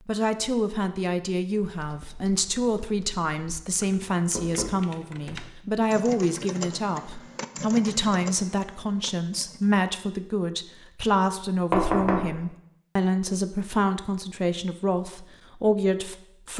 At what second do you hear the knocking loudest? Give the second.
12 s.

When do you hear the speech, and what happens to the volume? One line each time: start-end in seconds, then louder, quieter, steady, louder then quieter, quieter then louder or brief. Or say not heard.
0.1-16.5 steady.